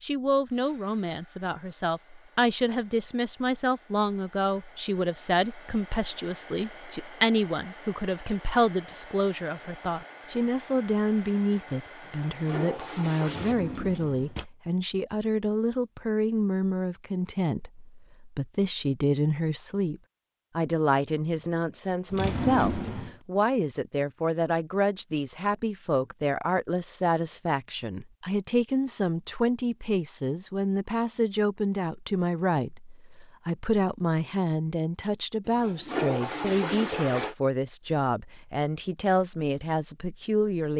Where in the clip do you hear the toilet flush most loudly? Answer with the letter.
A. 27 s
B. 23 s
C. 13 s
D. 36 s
D.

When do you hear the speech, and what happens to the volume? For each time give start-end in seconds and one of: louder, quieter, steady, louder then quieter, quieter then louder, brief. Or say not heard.
0.0-40.7 steady.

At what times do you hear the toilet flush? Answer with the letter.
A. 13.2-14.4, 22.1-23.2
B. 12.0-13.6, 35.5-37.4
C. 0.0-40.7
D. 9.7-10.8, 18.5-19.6
B.